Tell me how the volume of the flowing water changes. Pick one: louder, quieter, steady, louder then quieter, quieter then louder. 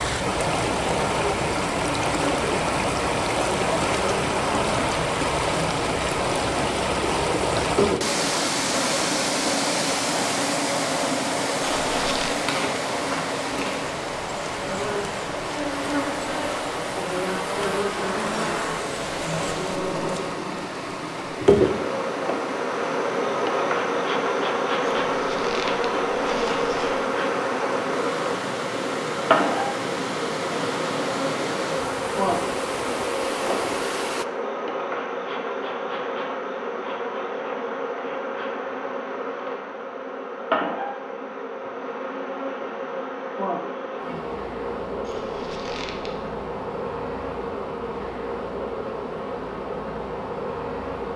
quieter.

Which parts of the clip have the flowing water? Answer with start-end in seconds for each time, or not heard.
0.0-34.2.